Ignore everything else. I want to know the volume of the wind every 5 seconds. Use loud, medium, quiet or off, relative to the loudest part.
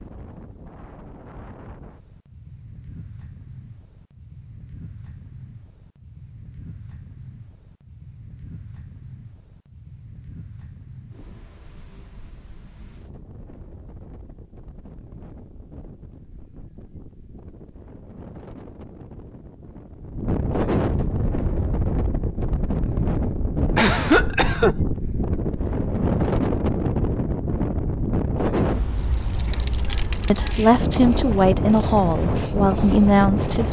quiet, quiet, quiet, quiet, loud, loud, loud.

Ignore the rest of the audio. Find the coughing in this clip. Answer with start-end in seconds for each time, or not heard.
23.8-24.8.